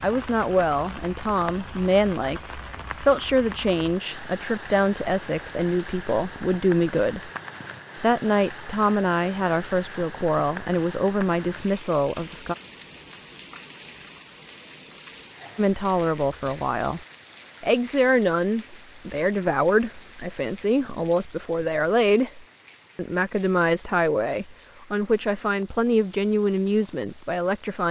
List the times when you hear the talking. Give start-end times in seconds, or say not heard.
0.0-7.3, 8.0-12.6, 15.6-17.0, 17.6-27.8.